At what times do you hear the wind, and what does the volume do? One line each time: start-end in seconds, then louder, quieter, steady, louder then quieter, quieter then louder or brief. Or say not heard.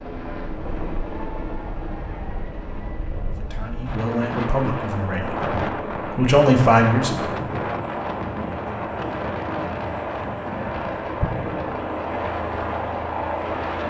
0.0-13.8 louder then quieter.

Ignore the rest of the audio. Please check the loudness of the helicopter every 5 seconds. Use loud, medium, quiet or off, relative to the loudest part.
medium, medium, loud.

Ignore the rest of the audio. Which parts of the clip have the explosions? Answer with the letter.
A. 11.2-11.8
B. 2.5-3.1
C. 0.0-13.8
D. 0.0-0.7
A.